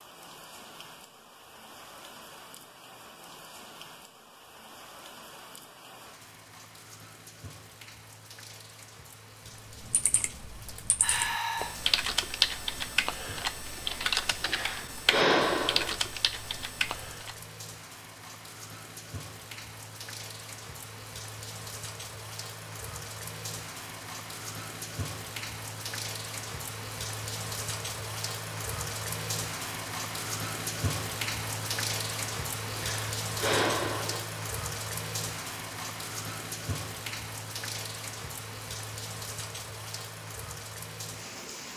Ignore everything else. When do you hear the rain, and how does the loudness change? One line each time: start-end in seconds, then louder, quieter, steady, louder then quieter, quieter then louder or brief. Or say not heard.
0.0-41.7 louder.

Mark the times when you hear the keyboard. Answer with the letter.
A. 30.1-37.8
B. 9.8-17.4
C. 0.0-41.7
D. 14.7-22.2
B.